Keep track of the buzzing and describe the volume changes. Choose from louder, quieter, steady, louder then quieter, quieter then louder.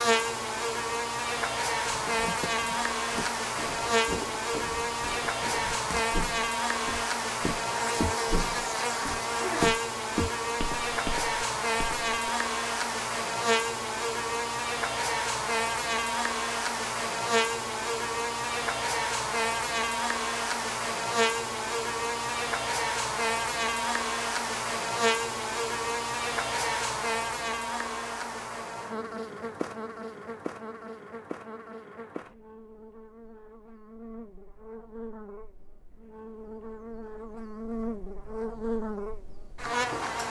quieter.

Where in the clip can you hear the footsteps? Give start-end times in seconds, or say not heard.
1.9-12.2.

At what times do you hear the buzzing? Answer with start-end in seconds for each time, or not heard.
0.0-40.2.